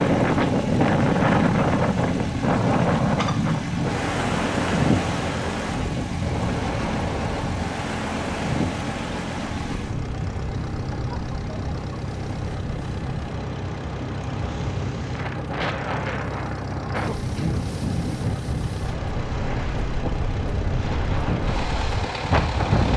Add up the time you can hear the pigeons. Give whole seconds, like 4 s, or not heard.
not heard.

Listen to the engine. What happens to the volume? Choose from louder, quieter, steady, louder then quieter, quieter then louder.
steady.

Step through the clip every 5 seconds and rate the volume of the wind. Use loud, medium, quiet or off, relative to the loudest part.
loud, medium, quiet, medium, medium.